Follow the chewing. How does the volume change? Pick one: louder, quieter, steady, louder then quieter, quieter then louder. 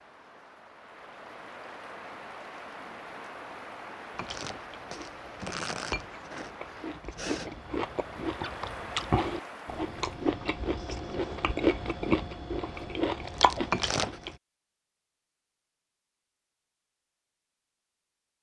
louder.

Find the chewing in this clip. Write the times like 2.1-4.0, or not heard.
4.2-14.3.